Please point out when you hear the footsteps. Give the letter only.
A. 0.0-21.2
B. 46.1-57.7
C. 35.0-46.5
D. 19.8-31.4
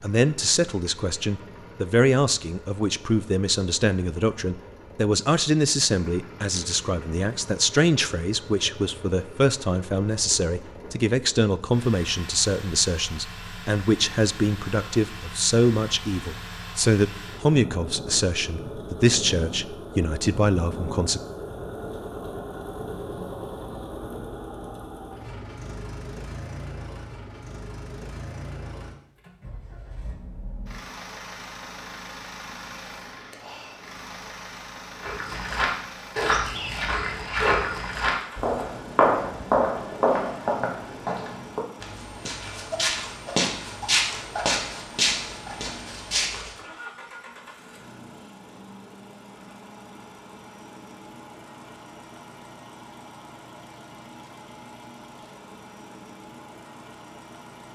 C.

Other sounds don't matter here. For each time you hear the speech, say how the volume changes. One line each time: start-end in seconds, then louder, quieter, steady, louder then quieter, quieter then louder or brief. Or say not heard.
0.0-21.2 steady.